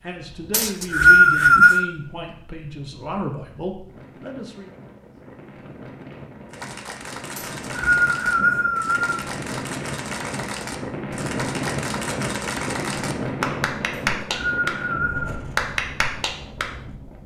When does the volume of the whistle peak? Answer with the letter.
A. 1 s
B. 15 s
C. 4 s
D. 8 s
A.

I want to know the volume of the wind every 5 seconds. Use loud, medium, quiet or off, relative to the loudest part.
quiet, medium, loud, medium.